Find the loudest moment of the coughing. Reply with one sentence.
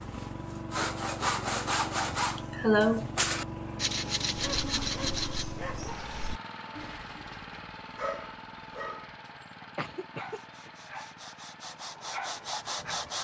The loudest moment of the coughing is at 3 seconds.